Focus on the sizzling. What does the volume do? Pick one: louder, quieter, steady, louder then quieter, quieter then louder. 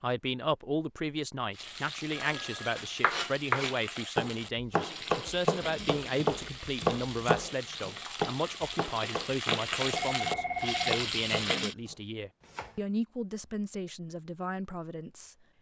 louder.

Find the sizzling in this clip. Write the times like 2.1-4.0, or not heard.
1.5-11.8.